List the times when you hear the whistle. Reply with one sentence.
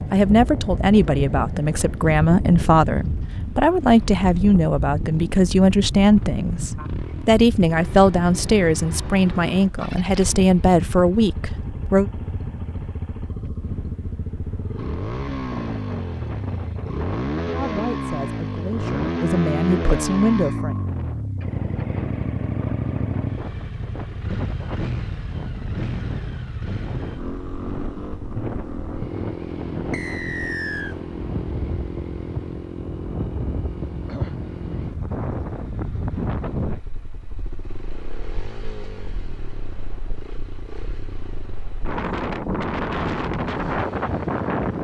The whistle can be heard from 29.9 to 30.9 s.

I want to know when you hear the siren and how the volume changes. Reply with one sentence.
The siren can't be heard in this clip.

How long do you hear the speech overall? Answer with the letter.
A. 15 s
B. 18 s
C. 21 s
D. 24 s
A.